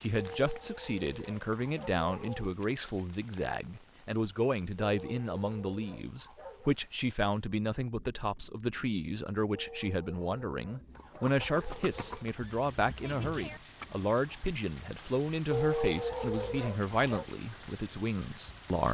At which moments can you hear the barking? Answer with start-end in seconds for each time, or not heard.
0.1-2.5, 4.8-6.8, 9.5-12.2, 15.5-17.2.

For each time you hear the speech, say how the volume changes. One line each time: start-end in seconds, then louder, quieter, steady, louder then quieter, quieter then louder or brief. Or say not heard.
0.0-18.8 steady.